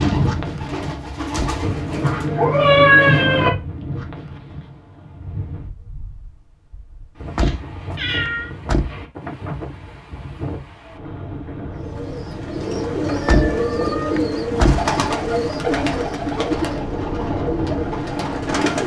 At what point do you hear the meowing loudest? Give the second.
3 s.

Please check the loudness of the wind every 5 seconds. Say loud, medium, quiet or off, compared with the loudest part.
loud, medium, medium, loud.